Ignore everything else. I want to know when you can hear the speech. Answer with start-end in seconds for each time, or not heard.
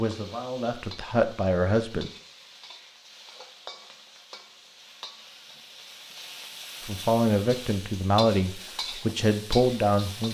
0.0-2.1, 6.8-10.2.